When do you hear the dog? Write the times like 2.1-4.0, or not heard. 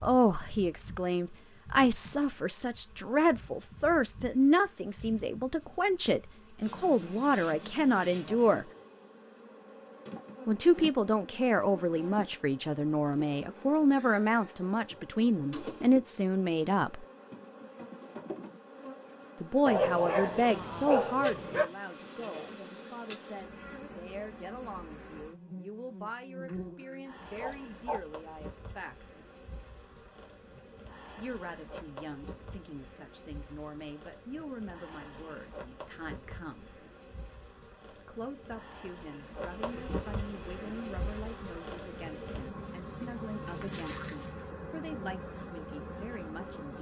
19.6-21.6, 26.4-28.0.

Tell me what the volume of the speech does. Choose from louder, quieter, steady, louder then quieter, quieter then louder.
quieter.